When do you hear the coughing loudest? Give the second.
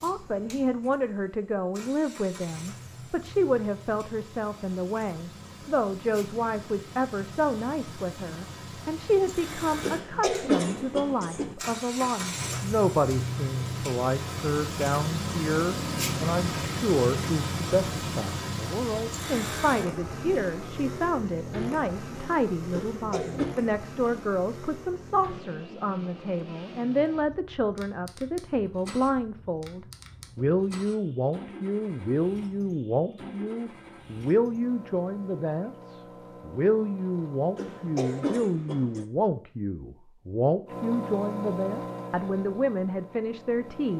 10 s.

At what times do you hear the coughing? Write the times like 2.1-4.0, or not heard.
9.8-11.6, 22.7-23.5, 37.5-39.0.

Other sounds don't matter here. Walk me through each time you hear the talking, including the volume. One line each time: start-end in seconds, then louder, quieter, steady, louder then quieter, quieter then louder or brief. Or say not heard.
0.0-43.9 steady.